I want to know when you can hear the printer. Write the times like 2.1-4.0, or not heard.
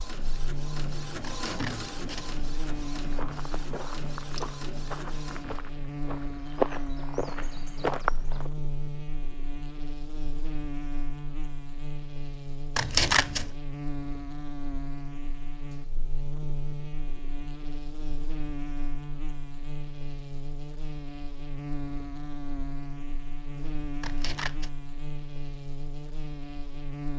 0.0-5.6.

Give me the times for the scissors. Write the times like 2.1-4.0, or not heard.
1.2-2.4, 12.8-13.5, 24.0-24.7.